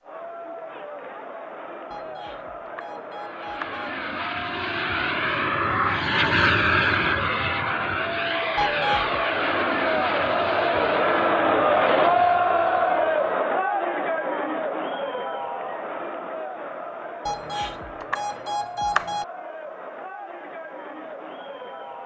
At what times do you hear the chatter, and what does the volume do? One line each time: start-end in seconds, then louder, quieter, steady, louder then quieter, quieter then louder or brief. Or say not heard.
0.0-22.0 louder then quieter.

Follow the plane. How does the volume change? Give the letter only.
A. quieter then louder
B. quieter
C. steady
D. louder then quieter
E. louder
D.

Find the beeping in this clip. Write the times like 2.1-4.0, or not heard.
1.9-3.9, 8.6-9.2, 17.2-19.2.